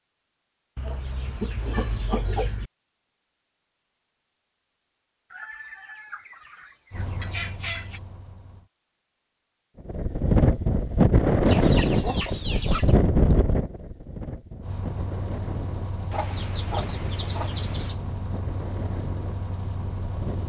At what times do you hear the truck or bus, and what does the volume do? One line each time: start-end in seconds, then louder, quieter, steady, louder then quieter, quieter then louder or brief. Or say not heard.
6.9-8.7 brief
14.6-20.4 steady.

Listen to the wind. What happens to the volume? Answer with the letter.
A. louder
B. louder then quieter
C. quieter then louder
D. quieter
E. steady
D.